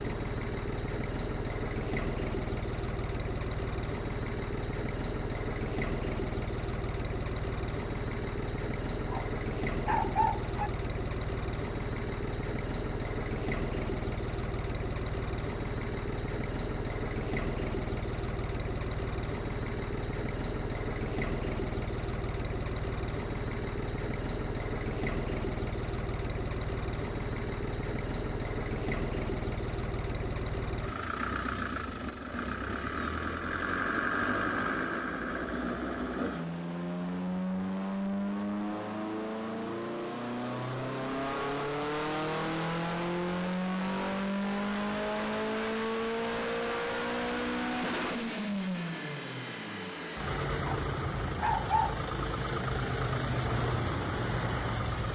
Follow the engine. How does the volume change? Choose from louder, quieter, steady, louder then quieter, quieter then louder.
steady.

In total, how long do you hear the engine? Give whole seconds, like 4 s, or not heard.
55 s.